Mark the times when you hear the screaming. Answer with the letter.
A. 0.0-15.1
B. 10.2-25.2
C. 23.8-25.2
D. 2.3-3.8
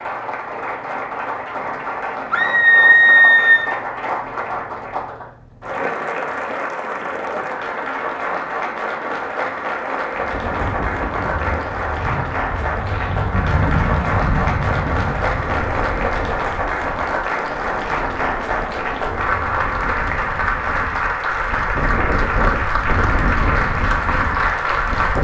D.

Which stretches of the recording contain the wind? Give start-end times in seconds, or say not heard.
10.2-25.2.